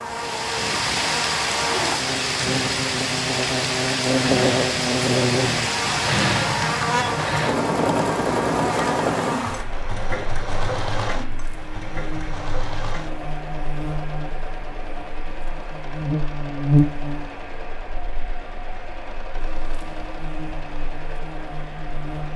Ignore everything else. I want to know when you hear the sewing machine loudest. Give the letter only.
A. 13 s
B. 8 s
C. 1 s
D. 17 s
B.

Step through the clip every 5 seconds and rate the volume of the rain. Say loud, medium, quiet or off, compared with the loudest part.
loud, loud, quiet, quiet, quiet.